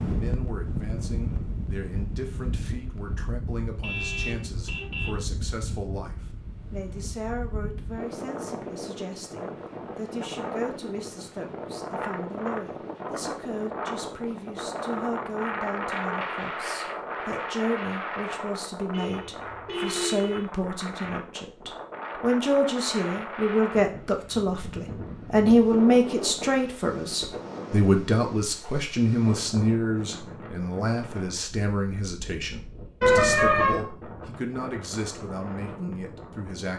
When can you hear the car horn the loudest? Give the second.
33 s.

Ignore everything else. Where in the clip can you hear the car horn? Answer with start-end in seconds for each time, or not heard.
3.8-5.2, 18.9-20.4, 33.0-33.8.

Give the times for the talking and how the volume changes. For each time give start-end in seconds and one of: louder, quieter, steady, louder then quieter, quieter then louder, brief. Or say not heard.
0.0-36.7 louder then quieter.